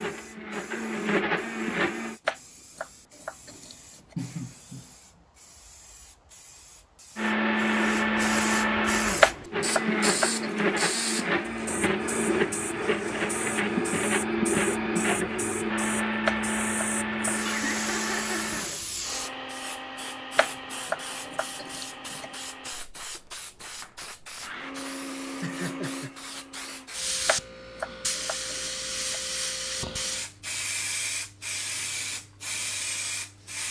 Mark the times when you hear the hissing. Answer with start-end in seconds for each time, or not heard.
0.0-33.6.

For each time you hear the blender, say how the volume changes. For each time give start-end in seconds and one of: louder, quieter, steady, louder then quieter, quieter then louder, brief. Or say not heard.
0.0-2.1 brief
7.2-26.9 quieter.